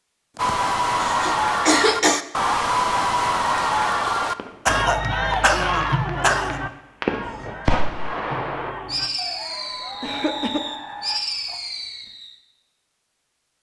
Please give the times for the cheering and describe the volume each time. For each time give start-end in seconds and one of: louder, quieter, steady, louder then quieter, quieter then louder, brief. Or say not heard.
0.3-11.6 quieter.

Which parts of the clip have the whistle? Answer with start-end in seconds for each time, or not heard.
not heard.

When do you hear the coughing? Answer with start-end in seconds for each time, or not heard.
0.5-2.2, 4.7-6.6, 10.0-10.6.